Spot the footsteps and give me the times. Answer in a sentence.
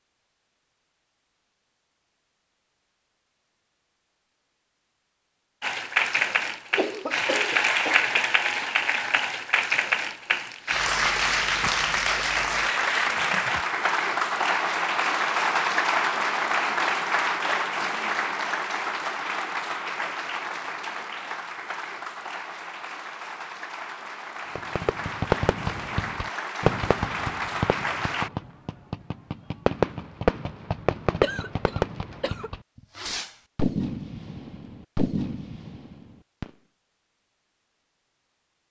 The footsteps can't be heard in this clip.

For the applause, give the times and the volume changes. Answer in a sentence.
You can hear the applause from 5.6 to 28.3 s, getting quieter.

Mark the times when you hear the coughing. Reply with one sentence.
The coughing can be heard from 6.7 to 8.2 s and from 31.2 to 32.5 s.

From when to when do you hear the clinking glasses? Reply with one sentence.
The clinking glasses can't be heard in this clip.